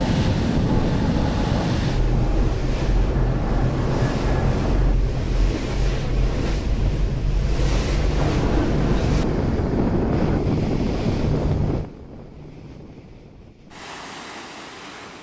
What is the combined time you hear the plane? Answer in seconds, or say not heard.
7 s.